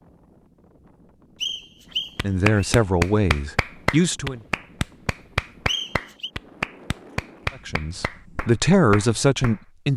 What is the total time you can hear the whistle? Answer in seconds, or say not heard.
2 s.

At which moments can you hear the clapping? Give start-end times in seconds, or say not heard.
2.1-9.6.